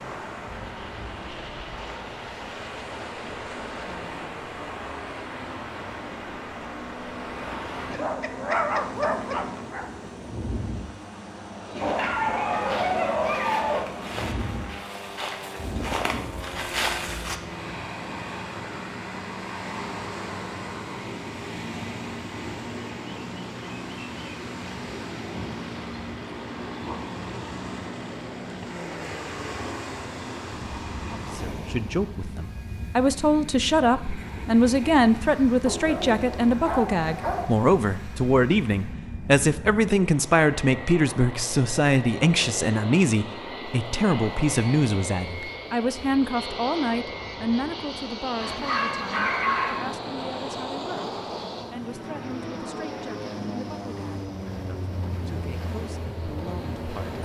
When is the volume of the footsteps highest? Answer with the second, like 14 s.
17 s.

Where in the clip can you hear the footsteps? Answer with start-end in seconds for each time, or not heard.
11.7-17.4.